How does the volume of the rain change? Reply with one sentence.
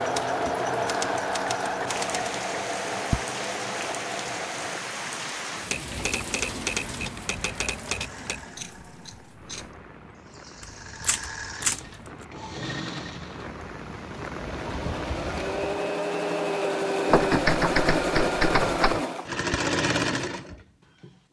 The volume of the rain goes down, then up.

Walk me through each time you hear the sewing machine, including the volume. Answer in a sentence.
You can hear the sewing machine from 0.0 to 21.1 s, getting quieter then louder.